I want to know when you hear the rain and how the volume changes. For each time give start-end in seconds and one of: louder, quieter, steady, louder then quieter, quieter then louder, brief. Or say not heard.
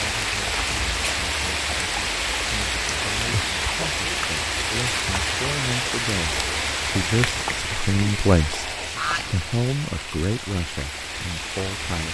0.0-12.0 quieter.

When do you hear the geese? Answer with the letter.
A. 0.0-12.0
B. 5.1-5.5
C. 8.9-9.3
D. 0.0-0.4
C.